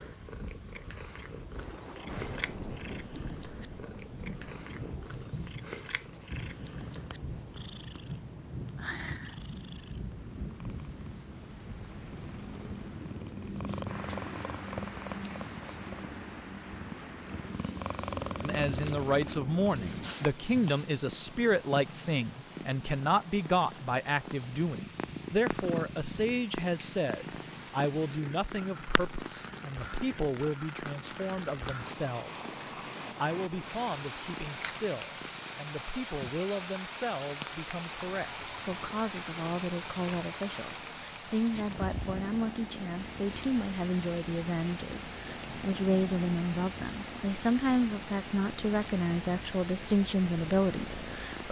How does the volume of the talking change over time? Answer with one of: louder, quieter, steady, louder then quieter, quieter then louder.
quieter then louder.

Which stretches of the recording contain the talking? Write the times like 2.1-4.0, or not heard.
18.4-51.4.